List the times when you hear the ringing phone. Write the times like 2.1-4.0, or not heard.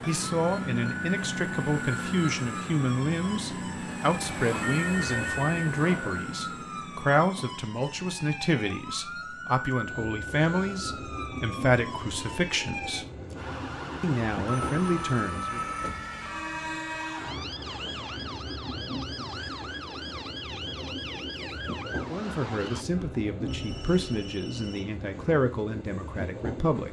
4.2-6.2, 14.4-15.9, 23.4-24.9.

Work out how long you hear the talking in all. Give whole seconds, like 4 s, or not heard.
19 s.